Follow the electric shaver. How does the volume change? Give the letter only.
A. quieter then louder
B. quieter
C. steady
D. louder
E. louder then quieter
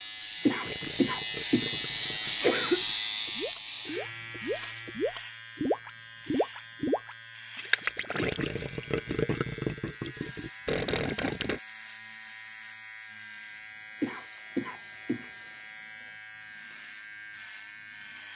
B.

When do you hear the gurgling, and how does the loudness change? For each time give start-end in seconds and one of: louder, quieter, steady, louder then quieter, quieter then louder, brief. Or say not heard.
0.6-11.6 louder.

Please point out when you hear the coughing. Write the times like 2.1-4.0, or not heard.
0.5-1.8, 2.4-2.9, 14.0-15.3.